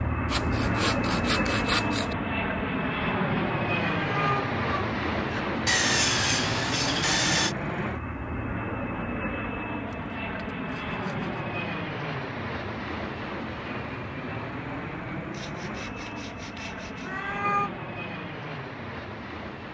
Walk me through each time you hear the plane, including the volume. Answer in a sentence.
You can hear the plane from 0.0 to 19.6 s, getting quieter.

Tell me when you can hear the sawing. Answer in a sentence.
The sawing can be heard from 0.2 to 2.1 s, from 5.7 to 7.5 s, from 9.8 to 11.4 s and from 15.3 to 17.1 s.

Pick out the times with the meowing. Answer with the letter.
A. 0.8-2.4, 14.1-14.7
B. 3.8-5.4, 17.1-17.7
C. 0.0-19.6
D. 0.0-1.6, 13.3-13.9
B.